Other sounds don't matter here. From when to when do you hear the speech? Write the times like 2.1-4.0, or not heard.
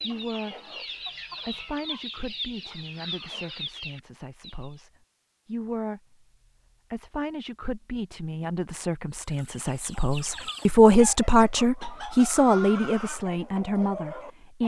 0.0-0.7, 1.4-6.2, 6.9-14.6.